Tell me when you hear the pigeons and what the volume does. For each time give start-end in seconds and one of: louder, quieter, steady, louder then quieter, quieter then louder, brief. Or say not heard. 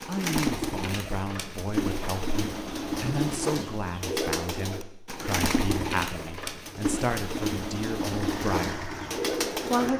0.0-9.9 steady.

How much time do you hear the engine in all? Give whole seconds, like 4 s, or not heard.
2 s.